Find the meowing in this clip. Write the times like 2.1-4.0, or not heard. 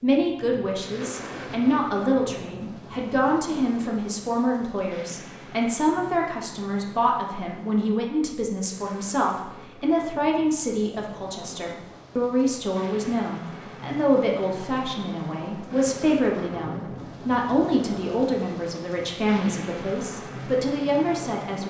not heard.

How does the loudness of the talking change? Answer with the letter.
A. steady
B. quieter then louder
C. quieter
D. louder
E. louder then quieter
A.